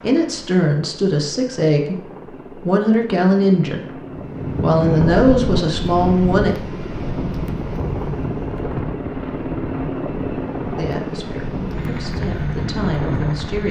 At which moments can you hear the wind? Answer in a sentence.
You can hear the wind from 4.1 to 13.6 s.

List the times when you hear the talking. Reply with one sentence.
You can hear the talking from 0.0 to 6.5 s and from 10.8 to 13.6 s.